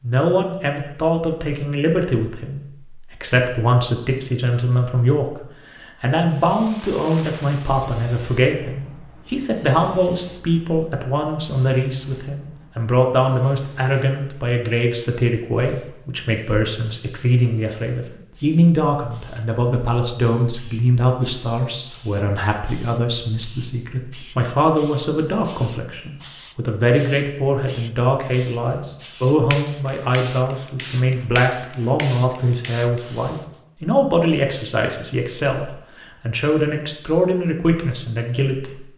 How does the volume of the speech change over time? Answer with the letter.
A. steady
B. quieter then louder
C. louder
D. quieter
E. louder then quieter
A.